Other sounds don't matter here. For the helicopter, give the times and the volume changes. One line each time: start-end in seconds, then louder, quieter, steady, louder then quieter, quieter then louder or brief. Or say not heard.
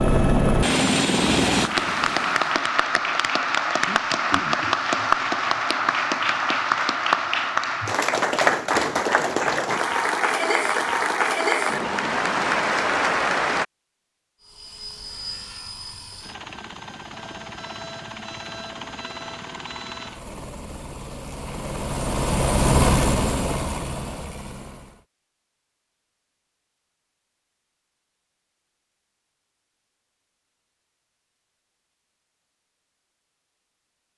0.0-2.6 brief
14.4-25.1 louder.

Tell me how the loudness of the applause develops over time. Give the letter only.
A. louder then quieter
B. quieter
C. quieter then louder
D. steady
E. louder
D.